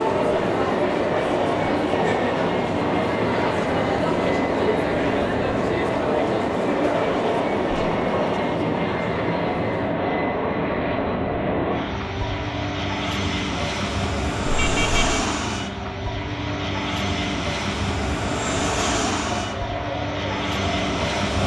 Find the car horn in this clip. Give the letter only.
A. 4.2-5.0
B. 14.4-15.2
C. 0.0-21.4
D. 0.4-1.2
B.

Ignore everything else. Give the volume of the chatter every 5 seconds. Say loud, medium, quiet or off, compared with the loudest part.
loud, loud, medium, medium, medium.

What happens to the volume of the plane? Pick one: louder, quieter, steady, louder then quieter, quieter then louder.
steady.